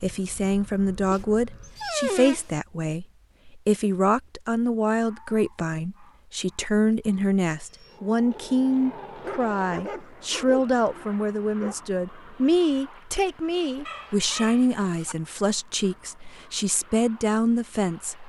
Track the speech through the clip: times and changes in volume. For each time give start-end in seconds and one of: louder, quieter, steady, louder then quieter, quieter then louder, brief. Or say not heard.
0.0-18.2 steady.